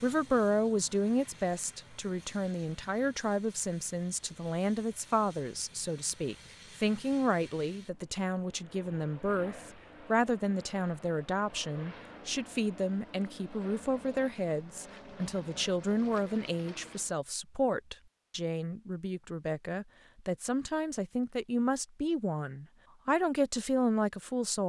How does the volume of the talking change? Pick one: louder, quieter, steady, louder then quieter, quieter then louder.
steady.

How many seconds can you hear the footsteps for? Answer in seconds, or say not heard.
not heard.